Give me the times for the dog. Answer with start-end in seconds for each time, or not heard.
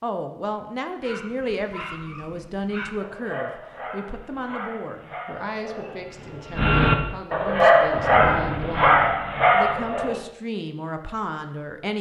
1.0-10.2.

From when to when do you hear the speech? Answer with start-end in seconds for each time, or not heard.
0.0-11.9.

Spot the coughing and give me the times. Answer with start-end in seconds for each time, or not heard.
not heard.